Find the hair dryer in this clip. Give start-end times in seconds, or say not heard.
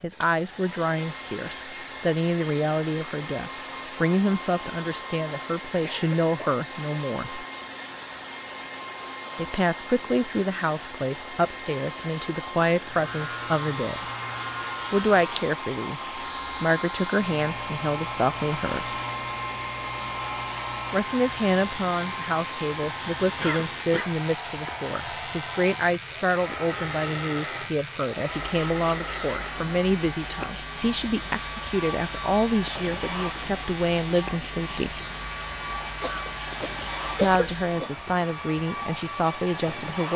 0.0-40.1.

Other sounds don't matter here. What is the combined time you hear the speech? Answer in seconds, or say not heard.
33 s.